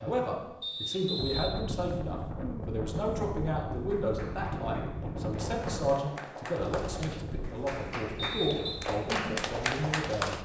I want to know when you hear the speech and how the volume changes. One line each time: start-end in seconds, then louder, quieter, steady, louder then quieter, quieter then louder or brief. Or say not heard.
0.0-10.4 steady.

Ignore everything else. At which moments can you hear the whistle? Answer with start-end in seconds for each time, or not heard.
0.6-1.6, 8.2-8.8.